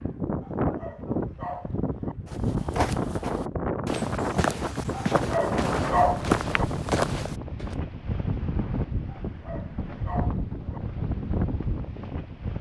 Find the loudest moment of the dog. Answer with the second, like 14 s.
6 s.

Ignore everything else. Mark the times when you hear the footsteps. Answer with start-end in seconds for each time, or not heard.
2.2-7.8.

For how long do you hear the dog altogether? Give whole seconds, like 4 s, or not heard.
5 s.